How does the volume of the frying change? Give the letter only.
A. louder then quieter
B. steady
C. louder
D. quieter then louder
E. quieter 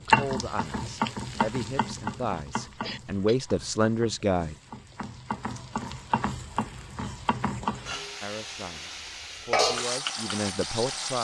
D.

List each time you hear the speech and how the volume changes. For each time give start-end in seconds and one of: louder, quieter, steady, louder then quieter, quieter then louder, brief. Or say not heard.
0.0-4.5 louder
8.2-11.1 brief.